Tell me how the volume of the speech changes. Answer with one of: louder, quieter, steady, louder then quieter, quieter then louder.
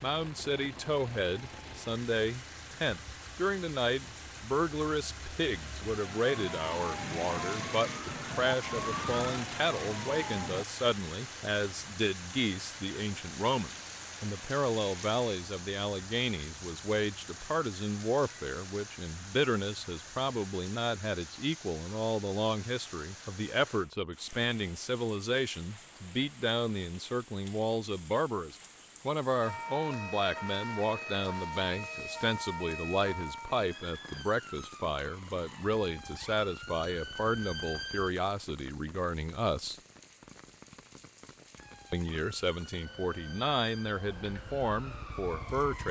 steady.